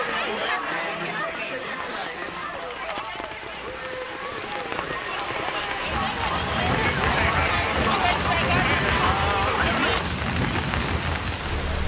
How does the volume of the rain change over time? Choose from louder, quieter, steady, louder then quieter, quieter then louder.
louder.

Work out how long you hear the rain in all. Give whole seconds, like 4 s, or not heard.
12 s.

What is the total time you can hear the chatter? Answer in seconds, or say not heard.
10 s.